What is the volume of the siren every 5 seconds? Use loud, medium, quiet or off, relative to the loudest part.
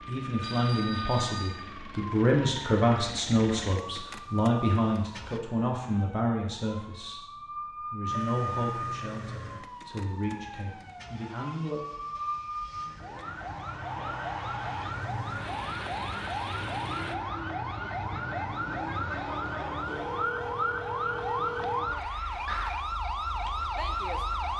medium, medium, medium, loud, loud.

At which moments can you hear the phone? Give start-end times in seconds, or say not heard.
0.4-1.6, 19.9-21.9.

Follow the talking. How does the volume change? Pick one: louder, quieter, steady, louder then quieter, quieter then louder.
quieter.